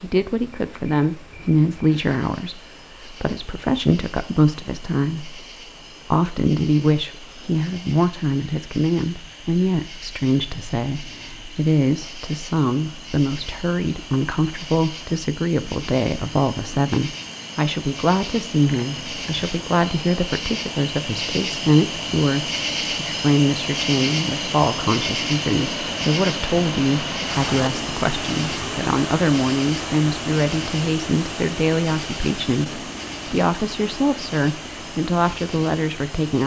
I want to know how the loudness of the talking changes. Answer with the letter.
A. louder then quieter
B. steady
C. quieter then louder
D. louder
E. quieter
B.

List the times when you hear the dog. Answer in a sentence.
You can't hear the dog here.